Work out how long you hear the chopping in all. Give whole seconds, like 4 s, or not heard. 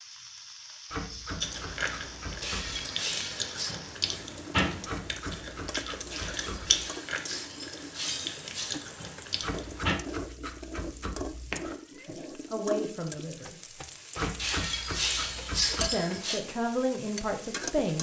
8 s.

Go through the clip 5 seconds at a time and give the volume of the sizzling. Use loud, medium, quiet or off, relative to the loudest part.
medium, medium, loud, loud.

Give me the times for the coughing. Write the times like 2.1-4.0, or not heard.
not heard.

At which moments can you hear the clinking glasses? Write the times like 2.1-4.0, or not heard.
2.4-3.8, 6.1-8.8, 14.3-16.4.